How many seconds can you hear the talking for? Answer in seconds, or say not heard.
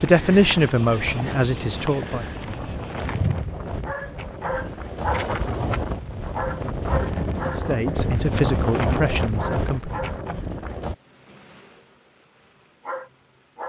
5 s.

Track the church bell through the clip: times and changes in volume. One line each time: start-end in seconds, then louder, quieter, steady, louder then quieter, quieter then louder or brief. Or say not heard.
not heard.